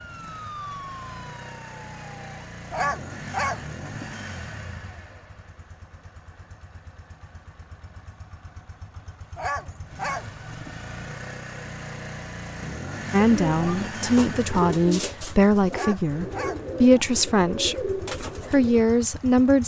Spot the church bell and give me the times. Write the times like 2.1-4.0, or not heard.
not heard.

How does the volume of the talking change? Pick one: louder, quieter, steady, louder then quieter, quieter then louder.
steady.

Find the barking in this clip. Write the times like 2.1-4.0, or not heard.
2.7-4.2, 9.3-10.8, 15.7-17.1.